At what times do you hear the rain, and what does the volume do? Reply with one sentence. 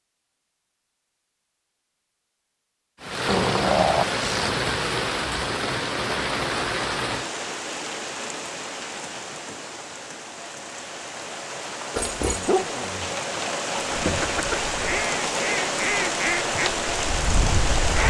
You can hear the rain from 3.0 to 18.0 s, getting quieter then louder.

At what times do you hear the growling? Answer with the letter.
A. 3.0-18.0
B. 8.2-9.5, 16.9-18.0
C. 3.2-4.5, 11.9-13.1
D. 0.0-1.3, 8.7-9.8
C.